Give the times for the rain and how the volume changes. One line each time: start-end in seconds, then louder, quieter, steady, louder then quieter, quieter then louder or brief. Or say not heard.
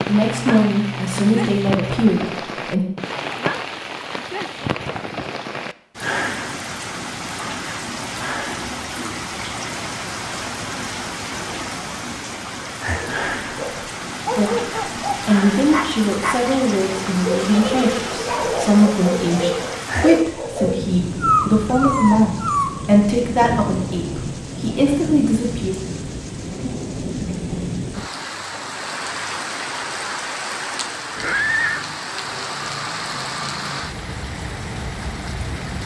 0.0-35.8 steady.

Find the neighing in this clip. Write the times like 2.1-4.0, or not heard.
0.1-2.1, 17.0-18.1, 31.1-31.9.